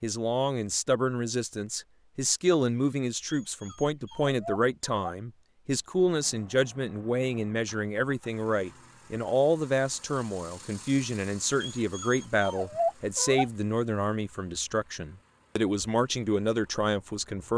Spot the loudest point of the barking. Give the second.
13 s.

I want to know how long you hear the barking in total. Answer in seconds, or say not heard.
4 s.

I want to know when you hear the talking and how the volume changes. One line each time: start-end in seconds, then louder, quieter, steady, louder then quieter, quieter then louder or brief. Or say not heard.
0.0-17.5 steady.